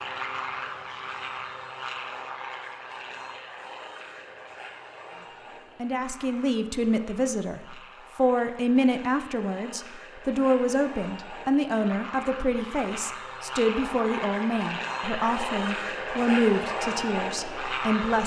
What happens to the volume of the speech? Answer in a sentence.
The loudness of the speech stays about the same.